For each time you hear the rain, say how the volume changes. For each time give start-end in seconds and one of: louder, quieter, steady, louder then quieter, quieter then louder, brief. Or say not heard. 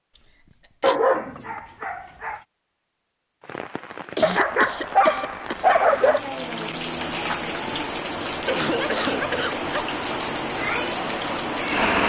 3.4-12.0 louder.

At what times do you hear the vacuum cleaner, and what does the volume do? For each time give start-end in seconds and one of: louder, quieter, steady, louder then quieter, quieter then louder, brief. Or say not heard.
not heard.